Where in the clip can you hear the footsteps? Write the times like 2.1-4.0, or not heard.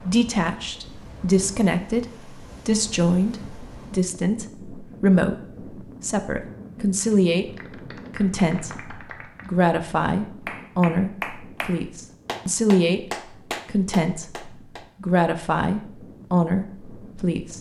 not heard.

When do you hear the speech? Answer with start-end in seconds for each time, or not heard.
0.0-7.5, 8.2-13.1, 13.7-17.5.